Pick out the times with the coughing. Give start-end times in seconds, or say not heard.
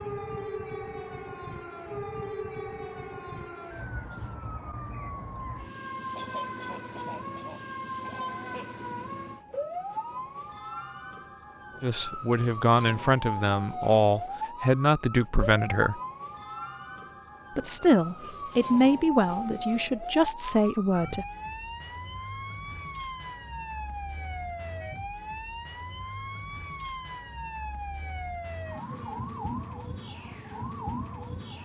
6.2-8.8.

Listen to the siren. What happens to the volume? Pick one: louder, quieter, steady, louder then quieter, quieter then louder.
steady.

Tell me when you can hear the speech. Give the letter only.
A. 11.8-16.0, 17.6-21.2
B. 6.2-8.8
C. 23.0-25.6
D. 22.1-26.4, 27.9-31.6
A.